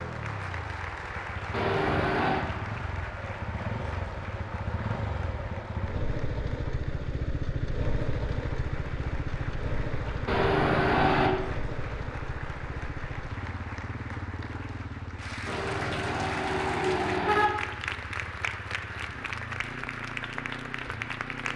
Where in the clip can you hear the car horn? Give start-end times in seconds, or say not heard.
1.5-2.5, 10.2-11.3, 15.4-17.5.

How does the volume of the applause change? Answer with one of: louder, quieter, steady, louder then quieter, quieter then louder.
quieter then louder.